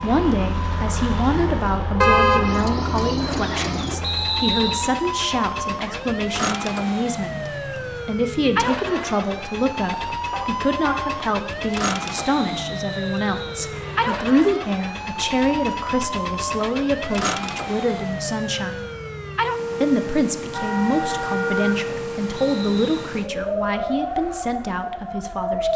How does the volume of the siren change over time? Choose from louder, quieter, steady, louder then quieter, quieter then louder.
steady.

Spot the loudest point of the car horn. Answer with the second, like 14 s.
2 s.